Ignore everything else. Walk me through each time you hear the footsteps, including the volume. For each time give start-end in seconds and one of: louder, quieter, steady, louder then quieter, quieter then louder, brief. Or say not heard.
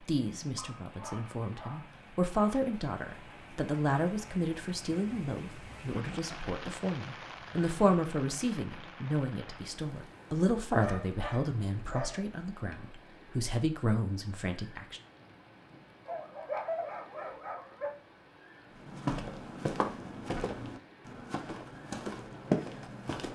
18.8-23.3 quieter then louder.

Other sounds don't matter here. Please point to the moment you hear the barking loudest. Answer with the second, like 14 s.
17 s.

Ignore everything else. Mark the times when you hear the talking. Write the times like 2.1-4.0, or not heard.
0.1-15.0.